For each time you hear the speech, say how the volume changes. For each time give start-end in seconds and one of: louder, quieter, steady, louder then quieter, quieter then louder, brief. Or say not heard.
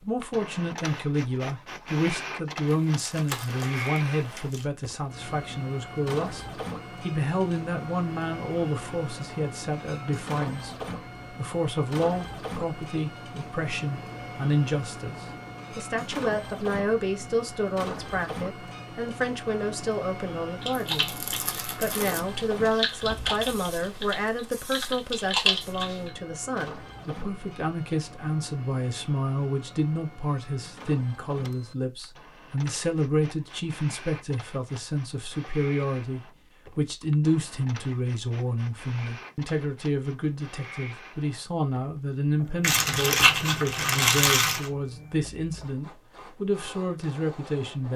0.0-47.9 steady.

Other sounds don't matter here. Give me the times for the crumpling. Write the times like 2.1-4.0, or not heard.
2.7-4.7, 20.9-22.2, 42.6-44.7.